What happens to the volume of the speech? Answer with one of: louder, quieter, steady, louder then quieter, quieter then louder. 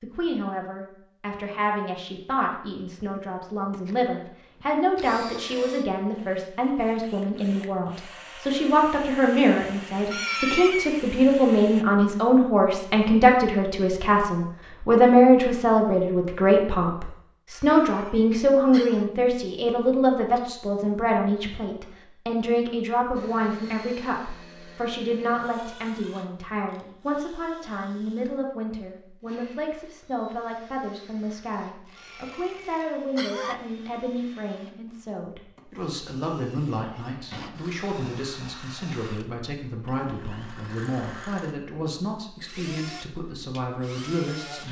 louder then quieter.